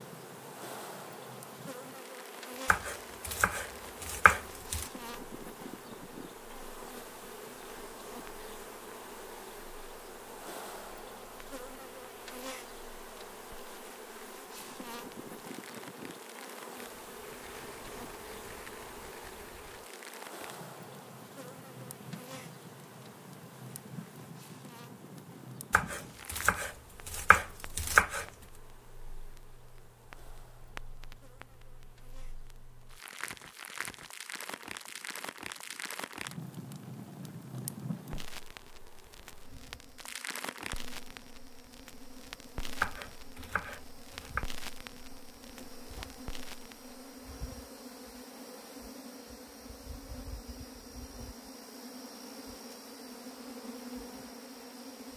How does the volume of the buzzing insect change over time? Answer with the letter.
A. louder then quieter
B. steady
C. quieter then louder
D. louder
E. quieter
C.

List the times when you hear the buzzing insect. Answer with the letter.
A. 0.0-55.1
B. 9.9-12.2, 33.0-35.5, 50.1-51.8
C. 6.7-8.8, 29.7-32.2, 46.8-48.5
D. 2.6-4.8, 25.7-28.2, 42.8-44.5
A.